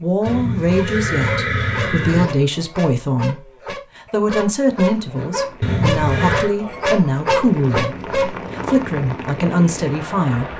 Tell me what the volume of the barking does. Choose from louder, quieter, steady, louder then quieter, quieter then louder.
louder.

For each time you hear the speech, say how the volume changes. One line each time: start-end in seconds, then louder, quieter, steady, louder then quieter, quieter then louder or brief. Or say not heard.
0.0-10.5 steady.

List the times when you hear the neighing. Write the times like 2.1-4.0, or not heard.
0.2-2.2, 5.6-6.5.